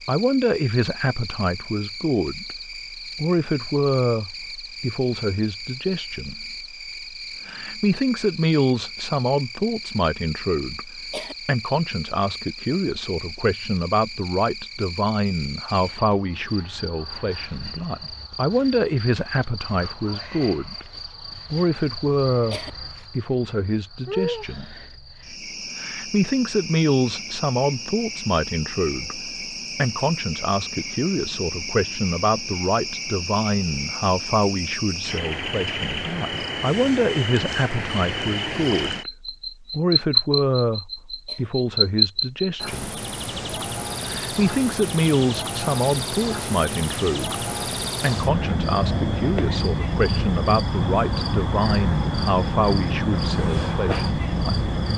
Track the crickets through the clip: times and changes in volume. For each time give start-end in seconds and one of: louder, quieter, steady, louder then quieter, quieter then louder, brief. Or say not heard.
0.0-54.9 louder.